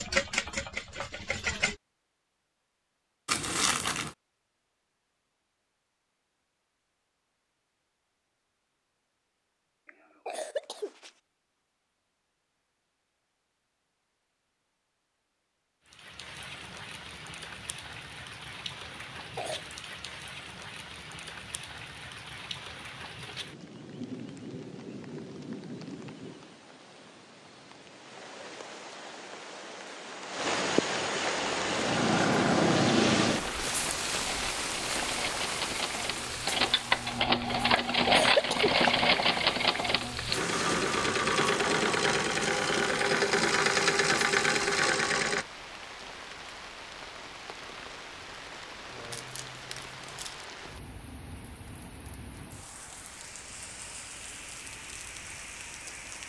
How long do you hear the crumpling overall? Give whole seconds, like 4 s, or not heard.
2 s.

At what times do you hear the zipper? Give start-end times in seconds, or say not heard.
not heard.